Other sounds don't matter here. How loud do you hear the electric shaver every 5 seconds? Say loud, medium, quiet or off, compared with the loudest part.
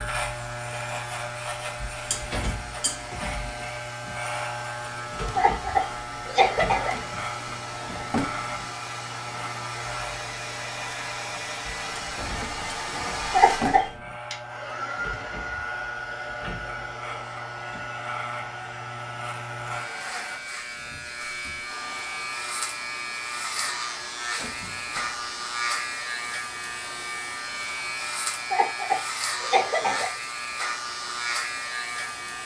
loud, loud, medium, medium, loud, loud, loud.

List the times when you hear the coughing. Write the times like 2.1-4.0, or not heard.
5.3-7.0, 13.3-13.8, 28.5-30.1.